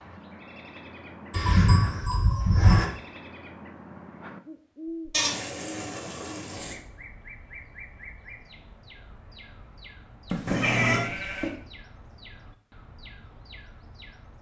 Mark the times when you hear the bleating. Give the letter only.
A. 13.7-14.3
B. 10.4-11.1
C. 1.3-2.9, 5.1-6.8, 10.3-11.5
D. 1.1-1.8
C.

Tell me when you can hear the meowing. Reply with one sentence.
The meowing can be heard from 10.4 to 11.1 s.